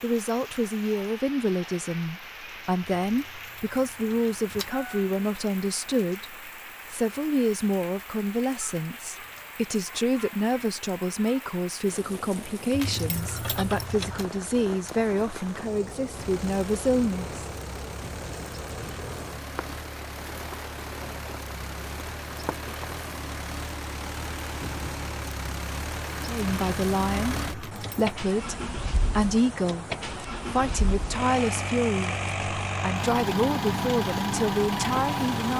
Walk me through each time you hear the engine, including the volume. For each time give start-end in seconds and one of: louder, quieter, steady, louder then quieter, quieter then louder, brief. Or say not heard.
16.1-35.5 louder.